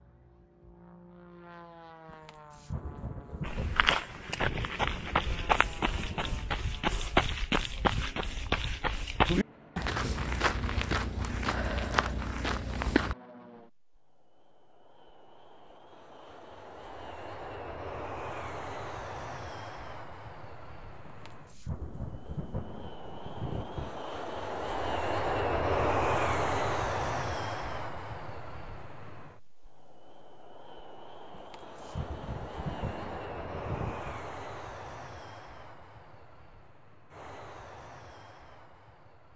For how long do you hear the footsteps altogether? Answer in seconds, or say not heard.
10 s.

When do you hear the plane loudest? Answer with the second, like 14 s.
26 s.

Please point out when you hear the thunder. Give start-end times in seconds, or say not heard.
2.0-6.5, 21.1-24.0, 31.3-34.2.